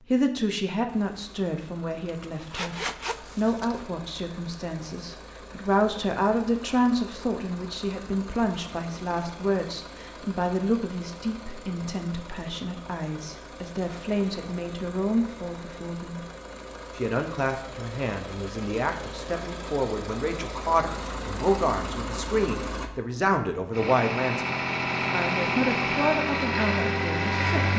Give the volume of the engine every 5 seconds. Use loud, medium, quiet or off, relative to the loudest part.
quiet, quiet, quiet, quiet, medium, loud.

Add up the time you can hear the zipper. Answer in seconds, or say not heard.
2 s.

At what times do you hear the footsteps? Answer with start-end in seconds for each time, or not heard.
not heard.